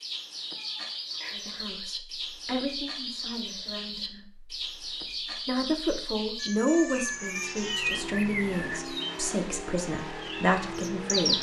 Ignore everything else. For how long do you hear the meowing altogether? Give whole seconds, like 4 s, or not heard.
3 s.